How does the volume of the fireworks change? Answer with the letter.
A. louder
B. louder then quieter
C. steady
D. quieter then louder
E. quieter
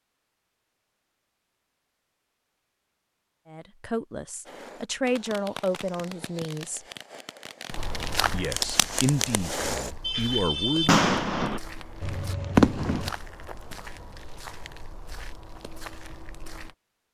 A.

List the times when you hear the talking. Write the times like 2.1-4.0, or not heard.
3.5-6.8, 8.3-11.1.